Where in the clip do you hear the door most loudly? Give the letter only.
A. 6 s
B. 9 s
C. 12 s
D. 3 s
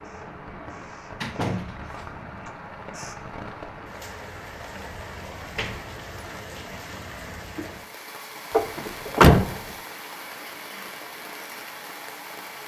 B.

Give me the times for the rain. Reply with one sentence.
You can hear the rain from 0.0 to 12.6 s.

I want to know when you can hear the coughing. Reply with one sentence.
The coughing can't be heard in this clip.